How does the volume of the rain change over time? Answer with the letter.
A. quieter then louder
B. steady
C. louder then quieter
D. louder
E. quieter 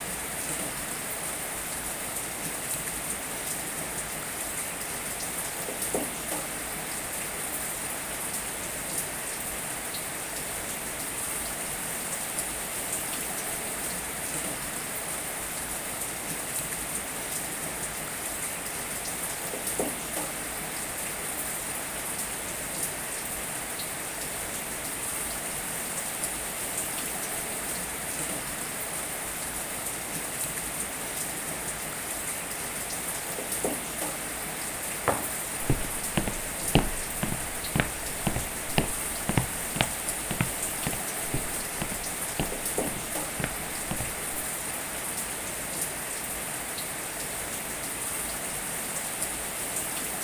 B.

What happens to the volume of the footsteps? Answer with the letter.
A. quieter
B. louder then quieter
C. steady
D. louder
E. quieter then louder
A.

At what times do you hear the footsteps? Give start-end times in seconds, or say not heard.
35.0-44.2.